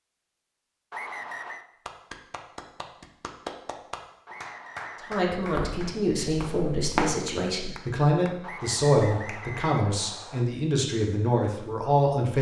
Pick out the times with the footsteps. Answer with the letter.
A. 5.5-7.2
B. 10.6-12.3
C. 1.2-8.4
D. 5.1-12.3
A.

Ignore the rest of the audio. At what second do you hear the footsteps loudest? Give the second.
7 s.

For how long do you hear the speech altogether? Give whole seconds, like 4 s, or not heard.
7 s.